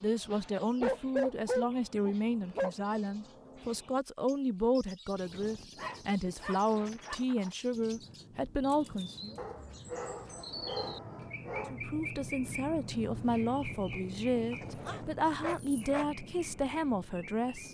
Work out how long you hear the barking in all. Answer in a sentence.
The barking can be heard for 7 seconds in total.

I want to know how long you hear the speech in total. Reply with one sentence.
The speech can be heard for 15 seconds in total.